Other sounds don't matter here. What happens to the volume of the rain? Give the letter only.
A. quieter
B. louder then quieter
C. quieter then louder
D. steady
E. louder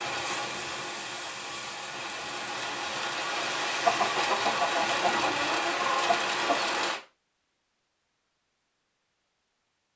E.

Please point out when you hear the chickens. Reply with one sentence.
The chickens can be heard from 3.8 to 6.8 s.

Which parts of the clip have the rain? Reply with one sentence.
You can hear the rain from 0.0 to 7.0 s.